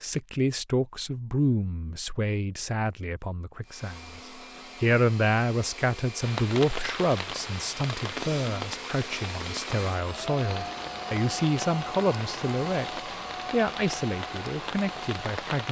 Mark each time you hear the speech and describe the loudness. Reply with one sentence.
The speech can be heard from 0.0 to 15.6 s, at a steady volume.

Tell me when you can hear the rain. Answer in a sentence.
You can hear the rain from 6.2 to 15.6 s.